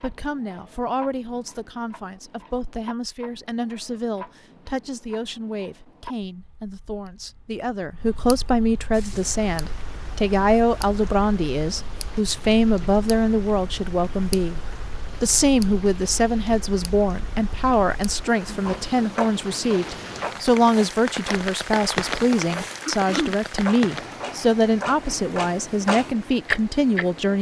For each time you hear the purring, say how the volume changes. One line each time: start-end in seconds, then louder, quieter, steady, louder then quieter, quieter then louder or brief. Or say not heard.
not heard.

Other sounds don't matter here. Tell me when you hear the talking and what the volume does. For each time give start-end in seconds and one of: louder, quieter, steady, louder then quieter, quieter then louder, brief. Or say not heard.
0.0-14.6 louder
15.2-27.3 steady.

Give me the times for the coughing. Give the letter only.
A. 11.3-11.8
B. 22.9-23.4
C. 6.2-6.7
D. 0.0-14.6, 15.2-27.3
B.